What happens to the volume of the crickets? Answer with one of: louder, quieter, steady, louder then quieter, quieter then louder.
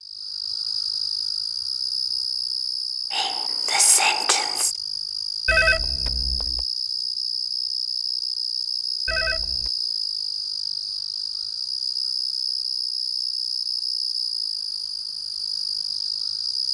steady.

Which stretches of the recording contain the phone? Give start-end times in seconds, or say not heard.
5.5-6.7, 9.1-9.7.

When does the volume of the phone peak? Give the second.
6 s.